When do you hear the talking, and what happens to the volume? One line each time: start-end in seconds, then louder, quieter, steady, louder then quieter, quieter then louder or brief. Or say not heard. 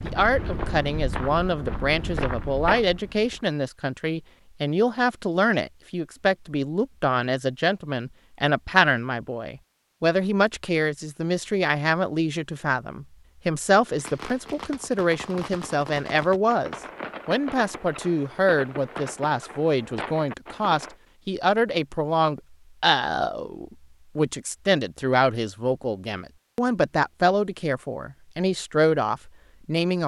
0.0-30.0 steady.